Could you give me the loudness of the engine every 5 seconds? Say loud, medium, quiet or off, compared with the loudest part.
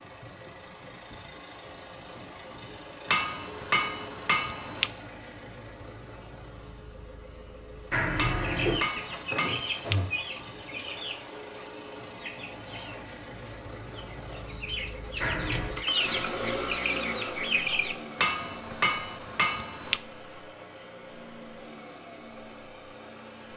medium, medium, medium, loud, medium.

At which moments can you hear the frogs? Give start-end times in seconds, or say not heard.
not heard.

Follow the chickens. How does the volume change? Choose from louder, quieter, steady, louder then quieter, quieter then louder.
quieter then louder.